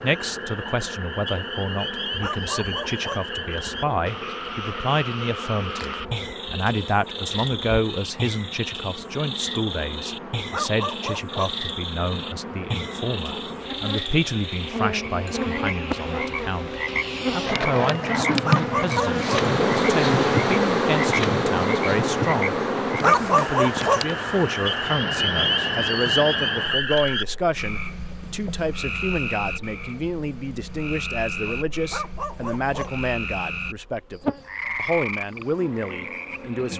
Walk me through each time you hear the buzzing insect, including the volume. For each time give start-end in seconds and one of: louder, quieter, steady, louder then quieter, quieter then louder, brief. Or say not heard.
0.0-36.7 louder then quieter.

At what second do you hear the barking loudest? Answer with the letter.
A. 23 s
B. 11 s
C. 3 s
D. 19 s
A.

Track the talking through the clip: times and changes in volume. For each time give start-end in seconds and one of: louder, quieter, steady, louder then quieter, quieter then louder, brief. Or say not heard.
0.0-36.7 steady.